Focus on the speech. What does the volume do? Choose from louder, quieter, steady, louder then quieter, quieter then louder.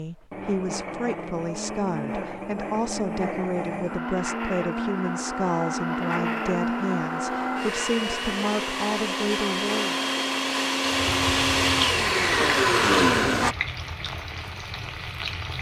steady.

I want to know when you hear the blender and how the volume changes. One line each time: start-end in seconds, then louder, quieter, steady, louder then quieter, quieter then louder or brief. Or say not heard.
0.0-13.6 louder.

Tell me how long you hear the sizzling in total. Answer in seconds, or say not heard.
5 s.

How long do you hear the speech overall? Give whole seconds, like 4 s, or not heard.
10 s.